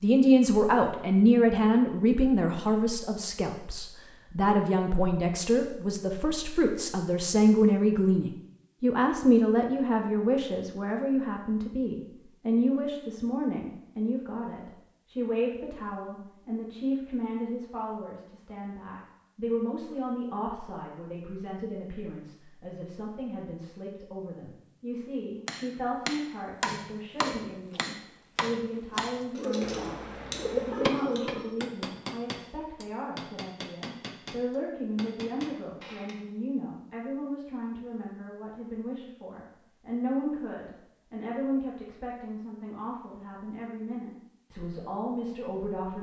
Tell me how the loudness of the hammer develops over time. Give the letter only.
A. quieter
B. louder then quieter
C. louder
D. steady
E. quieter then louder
A.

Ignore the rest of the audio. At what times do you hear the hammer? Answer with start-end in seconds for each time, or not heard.
25.4-36.2.